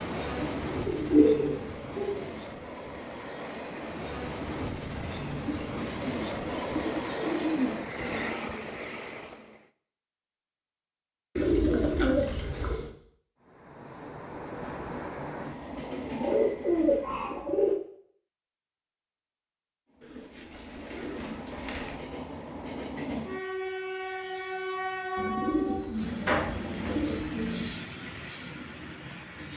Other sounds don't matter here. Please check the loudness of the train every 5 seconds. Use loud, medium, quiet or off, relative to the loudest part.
loud, loud, medium, loud, loud, loud.